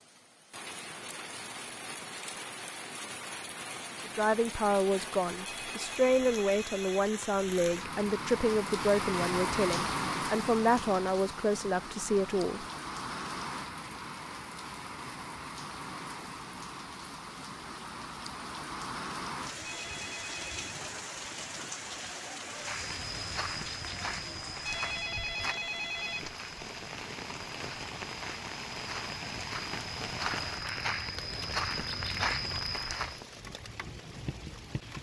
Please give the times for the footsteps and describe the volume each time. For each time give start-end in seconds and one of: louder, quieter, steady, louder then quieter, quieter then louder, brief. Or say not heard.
22.5-33.2 quieter then louder.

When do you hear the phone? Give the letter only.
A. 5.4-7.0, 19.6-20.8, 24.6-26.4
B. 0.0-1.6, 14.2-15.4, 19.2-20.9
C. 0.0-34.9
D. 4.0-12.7
A.